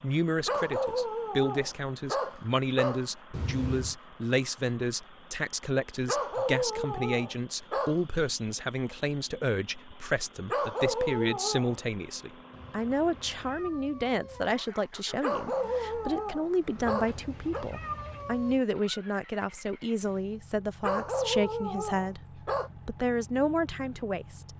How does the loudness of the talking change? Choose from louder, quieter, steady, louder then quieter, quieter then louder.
steady.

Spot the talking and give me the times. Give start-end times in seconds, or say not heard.
0.0-24.5.